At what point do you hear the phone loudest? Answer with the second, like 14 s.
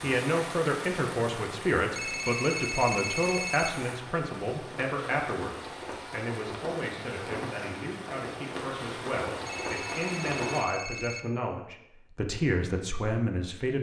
3 s.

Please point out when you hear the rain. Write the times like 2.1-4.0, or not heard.
0.0-10.7.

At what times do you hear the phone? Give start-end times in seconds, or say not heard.
1.8-3.8, 9.3-11.2.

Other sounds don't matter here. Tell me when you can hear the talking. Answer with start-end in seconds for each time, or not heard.
0.0-13.7.